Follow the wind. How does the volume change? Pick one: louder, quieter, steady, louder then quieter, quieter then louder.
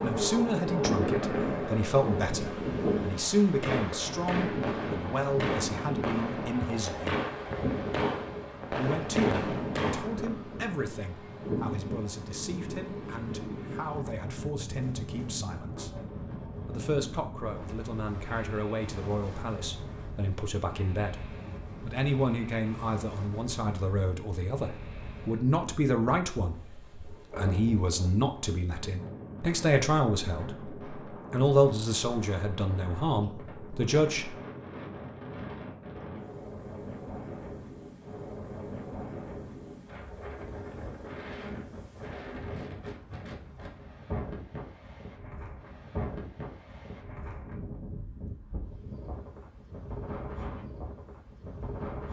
quieter.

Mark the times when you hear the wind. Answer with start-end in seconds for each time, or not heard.
0.0-52.0.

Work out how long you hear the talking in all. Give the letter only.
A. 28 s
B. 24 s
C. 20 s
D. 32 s
D.